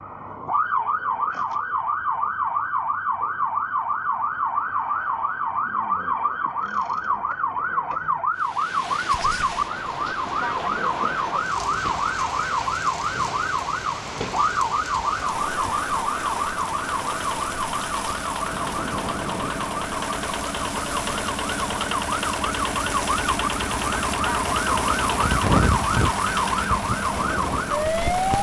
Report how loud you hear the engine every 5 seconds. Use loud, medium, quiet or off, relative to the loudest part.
off, off, off, medium, loud, loud.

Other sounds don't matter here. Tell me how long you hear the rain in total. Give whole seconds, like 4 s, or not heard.
20 s.